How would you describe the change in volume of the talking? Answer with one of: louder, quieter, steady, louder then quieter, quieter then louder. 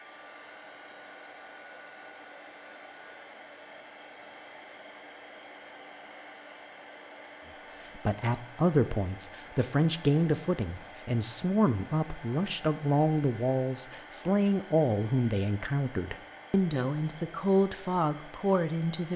steady.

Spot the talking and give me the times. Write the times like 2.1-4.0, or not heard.
8.0-19.1.